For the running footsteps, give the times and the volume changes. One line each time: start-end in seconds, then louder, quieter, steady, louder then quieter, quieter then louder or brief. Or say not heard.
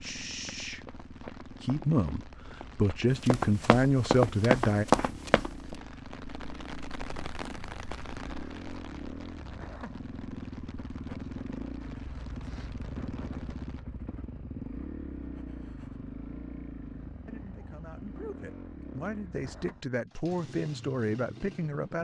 0.1-5.8 louder.